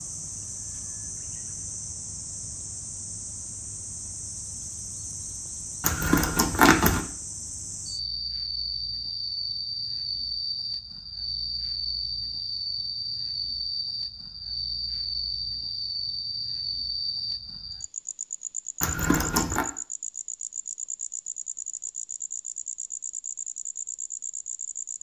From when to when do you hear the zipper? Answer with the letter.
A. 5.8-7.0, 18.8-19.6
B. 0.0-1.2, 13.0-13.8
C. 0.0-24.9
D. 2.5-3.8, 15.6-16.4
A.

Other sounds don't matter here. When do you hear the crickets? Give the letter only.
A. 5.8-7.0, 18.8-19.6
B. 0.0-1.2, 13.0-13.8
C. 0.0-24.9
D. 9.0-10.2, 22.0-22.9
C.